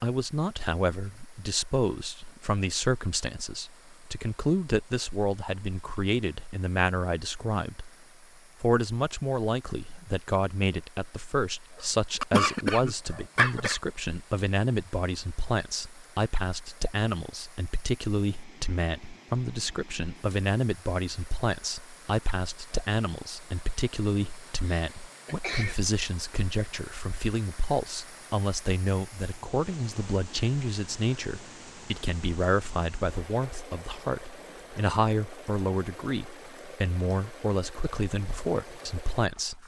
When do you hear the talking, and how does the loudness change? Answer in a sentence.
You can hear the talking from 0.0 to 7.9 s, at a steady volume; and from 8.6 to 39.6 s, at a steady volume.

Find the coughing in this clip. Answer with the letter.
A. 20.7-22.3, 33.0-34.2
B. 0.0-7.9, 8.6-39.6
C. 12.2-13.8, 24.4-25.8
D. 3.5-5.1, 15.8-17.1
C.